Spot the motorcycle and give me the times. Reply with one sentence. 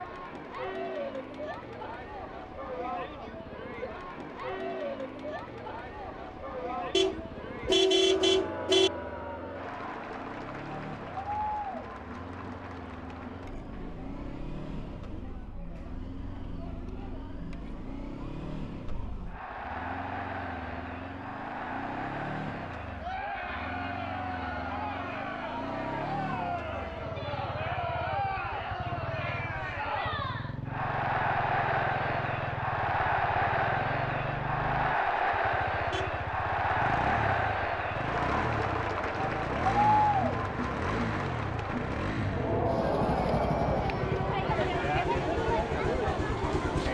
The motorcycle can be heard from 0.0 to 46.8 s.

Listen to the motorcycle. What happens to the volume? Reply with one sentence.
The volume of the motorcycle goes up.